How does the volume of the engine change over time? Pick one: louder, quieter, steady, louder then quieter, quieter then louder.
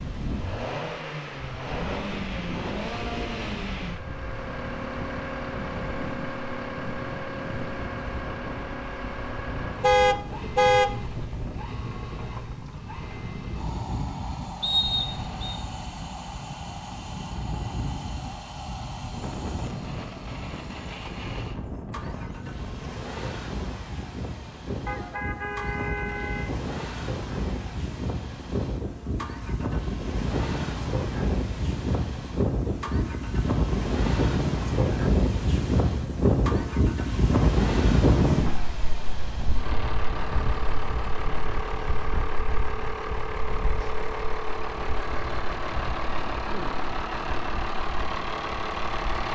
quieter then louder.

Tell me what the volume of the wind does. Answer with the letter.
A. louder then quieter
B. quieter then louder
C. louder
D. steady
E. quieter
A.